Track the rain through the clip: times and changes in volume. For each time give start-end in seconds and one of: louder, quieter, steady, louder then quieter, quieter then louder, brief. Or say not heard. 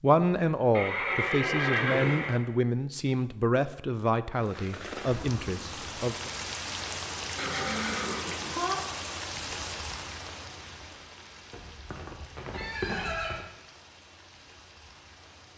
4.3-15.5 quieter.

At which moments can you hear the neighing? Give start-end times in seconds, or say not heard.
0.8-2.4, 7.3-8.8, 11.5-13.4.